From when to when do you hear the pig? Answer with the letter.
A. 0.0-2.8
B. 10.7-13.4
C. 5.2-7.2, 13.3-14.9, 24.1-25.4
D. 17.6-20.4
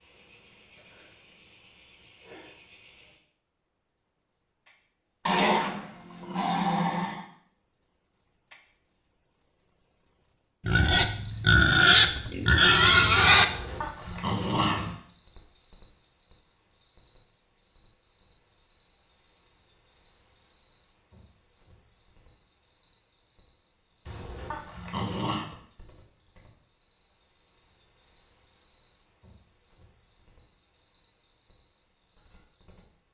B.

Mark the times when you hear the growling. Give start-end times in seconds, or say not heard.
5.2-7.2, 13.3-14.9, 24.1-25.4.